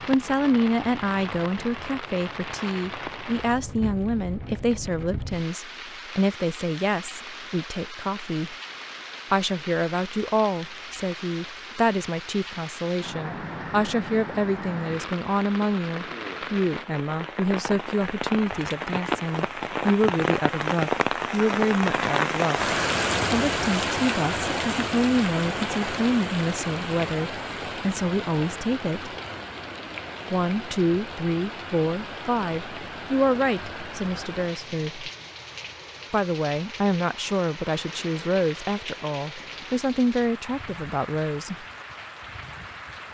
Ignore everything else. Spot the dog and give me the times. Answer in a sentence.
The dog can't be heard in this clip.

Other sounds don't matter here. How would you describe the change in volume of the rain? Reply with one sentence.
The volume of the rain goes up, then down.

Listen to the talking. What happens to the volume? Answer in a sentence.
The volume of the talking stays about the same.